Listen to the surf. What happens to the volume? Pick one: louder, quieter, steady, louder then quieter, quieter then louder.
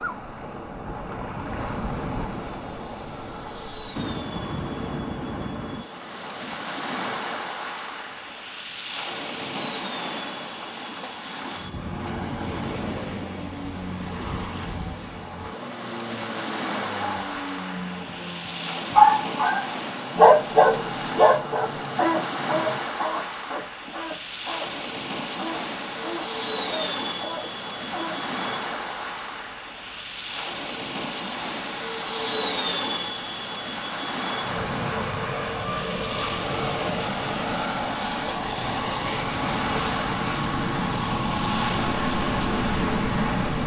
steady.